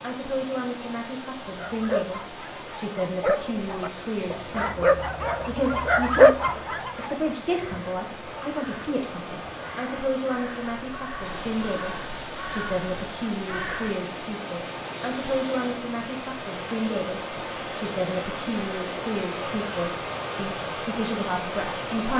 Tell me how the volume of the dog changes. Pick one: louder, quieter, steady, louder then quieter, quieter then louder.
louder.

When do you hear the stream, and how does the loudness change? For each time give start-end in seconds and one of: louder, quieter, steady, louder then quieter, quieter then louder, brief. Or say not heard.
0.0-22.1 louder.